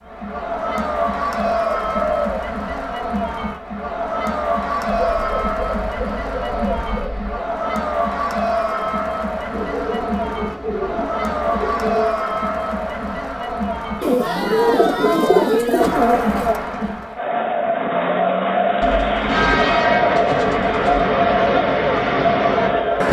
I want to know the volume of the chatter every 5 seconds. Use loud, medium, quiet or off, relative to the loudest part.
medium, medium, medium, loud, loud.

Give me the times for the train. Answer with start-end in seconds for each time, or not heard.
19.1-23.0.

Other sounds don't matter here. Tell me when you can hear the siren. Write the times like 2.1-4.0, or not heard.
not heard.